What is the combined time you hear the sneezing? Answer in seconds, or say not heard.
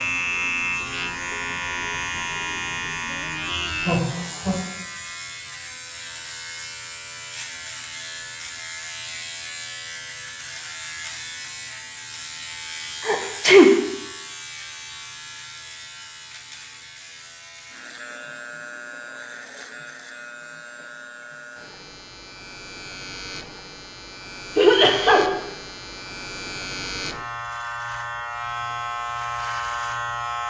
2 s.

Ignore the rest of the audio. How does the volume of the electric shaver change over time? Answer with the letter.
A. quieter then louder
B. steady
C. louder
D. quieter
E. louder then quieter
A.